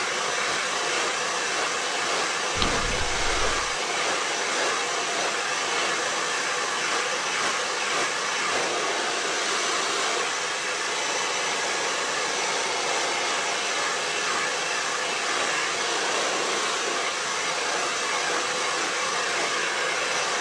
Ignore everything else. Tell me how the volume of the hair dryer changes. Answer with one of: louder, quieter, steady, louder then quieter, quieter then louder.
steady.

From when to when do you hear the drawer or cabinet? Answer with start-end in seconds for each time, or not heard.
2.5-3.6.